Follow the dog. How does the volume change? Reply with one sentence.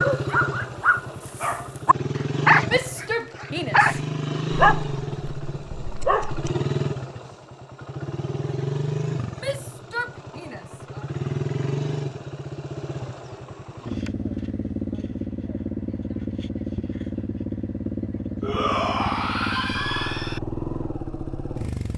The volume of the dog goes up, then down.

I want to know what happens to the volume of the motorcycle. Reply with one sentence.
The loudness of the motorcycle stays about the same.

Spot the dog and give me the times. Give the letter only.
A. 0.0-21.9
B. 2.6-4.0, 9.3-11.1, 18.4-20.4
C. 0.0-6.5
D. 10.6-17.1
C.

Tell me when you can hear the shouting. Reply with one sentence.
The shouting can be heard from 2.6 to 4.0 s, from 9.3 to 11.1 s and from 18.4 to 20.4 s.